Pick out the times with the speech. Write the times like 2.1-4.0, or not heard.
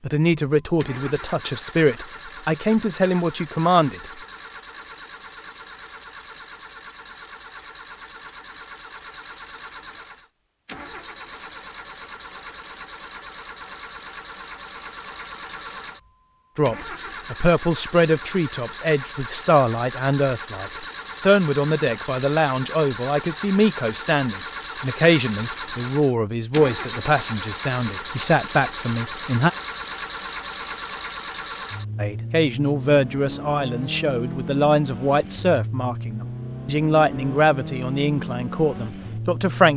0.0-4.0, 16.6-29.5, 31.9-39.7.